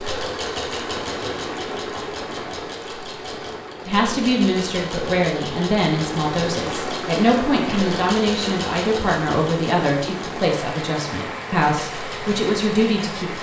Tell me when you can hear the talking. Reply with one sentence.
You can hear the talking from 3.9 to 13.3 s.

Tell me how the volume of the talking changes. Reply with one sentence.
The loudness of the talking stays about the same.